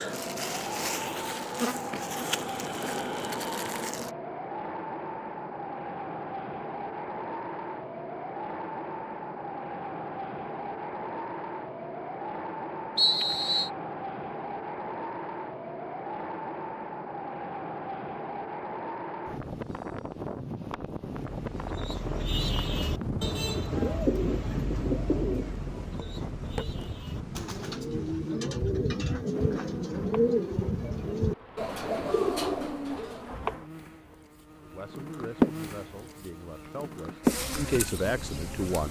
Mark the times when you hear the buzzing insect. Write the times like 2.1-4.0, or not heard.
0.0-4.1, 29.3-38.8.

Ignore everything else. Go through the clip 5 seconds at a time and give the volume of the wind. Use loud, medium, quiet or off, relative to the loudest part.
loud, loud, loud, loud, loud, loud, off, off.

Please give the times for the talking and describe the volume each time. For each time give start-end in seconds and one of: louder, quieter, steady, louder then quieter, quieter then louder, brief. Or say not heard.
34.6-38.8 louder.